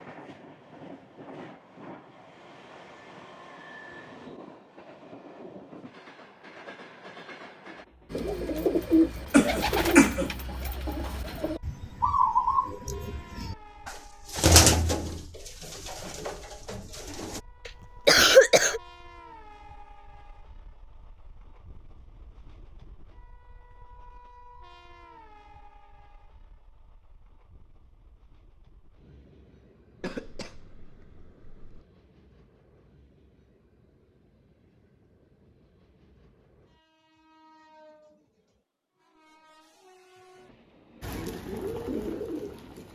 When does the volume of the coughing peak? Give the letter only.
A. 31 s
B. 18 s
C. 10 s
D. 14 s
B.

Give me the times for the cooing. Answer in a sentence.
You can hear the cooing from 8.1 to 17.4 s and from 41.0 to 42.9 s.